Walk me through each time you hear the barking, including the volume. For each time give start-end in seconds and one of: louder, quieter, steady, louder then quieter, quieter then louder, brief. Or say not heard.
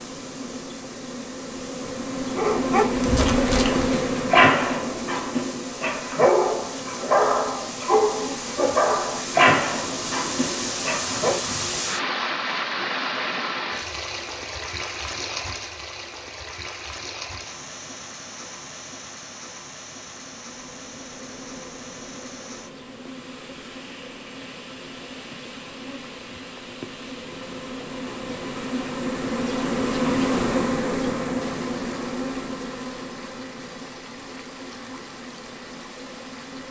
2.4-11.4 steady.